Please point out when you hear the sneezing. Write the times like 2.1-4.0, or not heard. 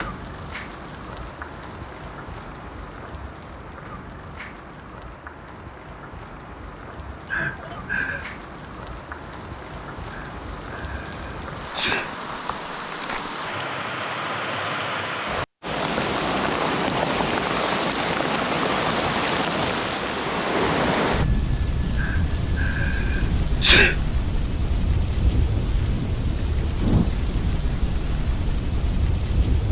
7.2-8.2, 10.1-12.1, 22.0-23.9.